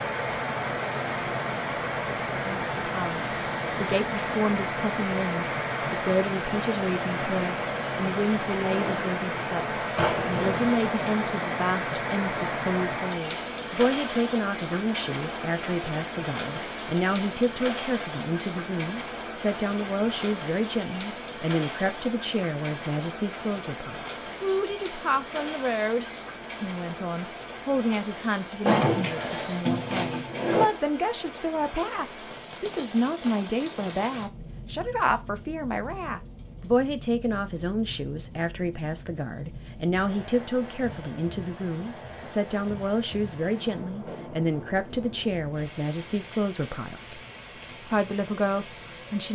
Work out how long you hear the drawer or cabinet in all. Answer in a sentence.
The drawer or cabinet can be heard for 3 seconds in total.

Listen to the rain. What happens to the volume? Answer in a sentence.
The volume of the rain goes down.